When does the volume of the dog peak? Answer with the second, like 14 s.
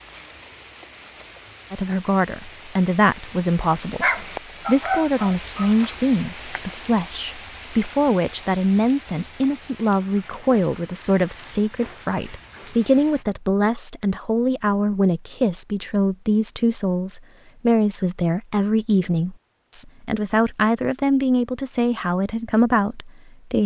4 s.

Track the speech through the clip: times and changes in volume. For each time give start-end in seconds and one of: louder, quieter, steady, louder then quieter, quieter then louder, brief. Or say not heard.
1.7-23.6 steady.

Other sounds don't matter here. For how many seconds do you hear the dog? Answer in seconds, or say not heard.
2 s.